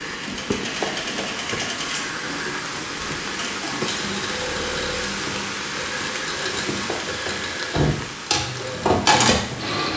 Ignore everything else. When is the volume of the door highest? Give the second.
8 s.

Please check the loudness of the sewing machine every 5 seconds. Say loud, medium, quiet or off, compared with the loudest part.
medium, loud.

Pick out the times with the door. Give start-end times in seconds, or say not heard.
0.8-1.2, 6.8-8.1.